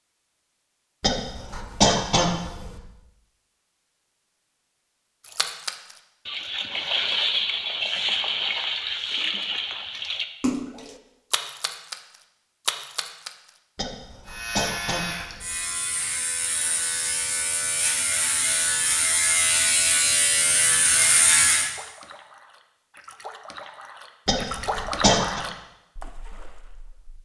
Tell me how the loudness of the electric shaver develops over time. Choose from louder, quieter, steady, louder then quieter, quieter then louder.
louder.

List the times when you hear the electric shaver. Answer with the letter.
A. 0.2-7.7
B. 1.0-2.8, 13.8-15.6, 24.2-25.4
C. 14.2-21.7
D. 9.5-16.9
C.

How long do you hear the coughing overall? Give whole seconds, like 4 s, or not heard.
5 s.